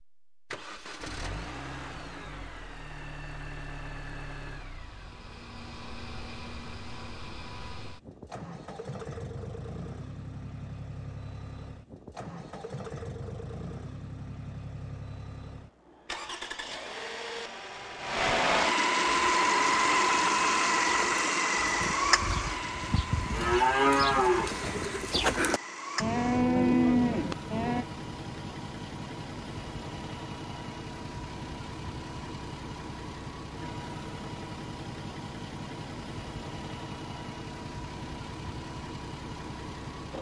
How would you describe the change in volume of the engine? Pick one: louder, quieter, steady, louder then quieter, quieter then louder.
louder then quieter.